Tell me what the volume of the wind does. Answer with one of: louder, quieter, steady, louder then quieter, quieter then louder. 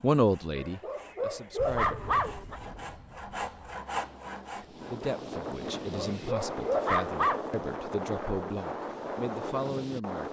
louder.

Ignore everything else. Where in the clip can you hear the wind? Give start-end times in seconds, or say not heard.
1.6-10.2.